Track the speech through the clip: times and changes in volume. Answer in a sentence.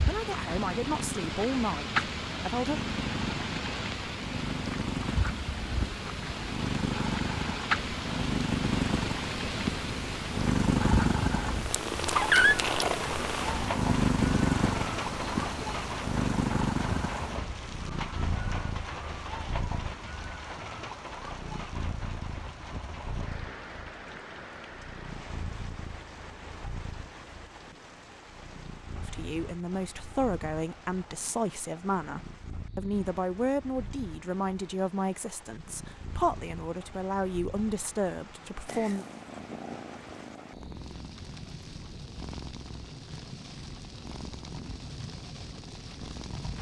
The speech can be heard briefly from 0.1 to 2.8 s; and from 28.9 to 39.0 s, at a steady volume.